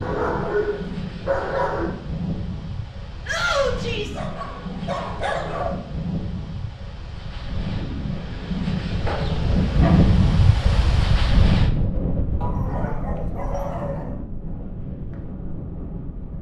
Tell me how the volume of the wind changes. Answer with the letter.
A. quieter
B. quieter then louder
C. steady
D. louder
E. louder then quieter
E.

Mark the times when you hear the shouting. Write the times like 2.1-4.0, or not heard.
3.2-4.2.